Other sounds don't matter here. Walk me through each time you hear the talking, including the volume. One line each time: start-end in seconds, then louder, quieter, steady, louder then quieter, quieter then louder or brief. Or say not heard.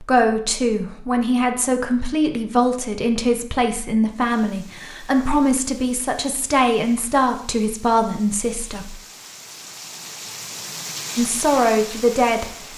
0.0-9.0 steady
11.2-12.4 brief.